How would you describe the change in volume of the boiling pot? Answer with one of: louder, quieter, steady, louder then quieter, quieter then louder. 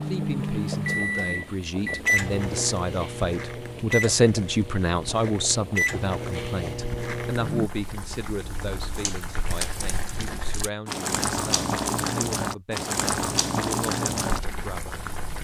louder.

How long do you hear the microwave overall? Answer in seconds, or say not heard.
8 s.